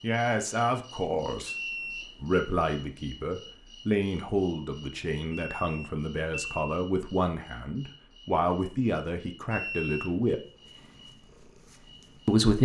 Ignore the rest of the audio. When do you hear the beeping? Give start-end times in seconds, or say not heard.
1.4-2.1, 5.3-6.8, 9.5-10.2.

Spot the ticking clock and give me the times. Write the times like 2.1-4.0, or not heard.
not heard.